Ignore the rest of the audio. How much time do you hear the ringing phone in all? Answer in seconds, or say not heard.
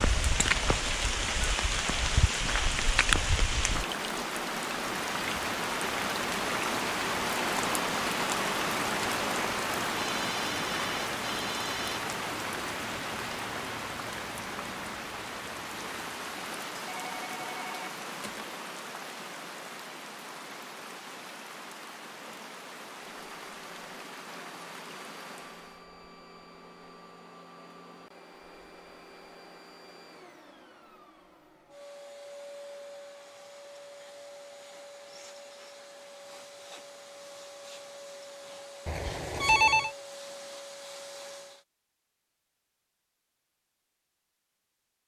5 s.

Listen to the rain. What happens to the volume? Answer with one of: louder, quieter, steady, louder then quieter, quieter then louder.
quieter.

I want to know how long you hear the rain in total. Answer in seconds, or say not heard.
26 s.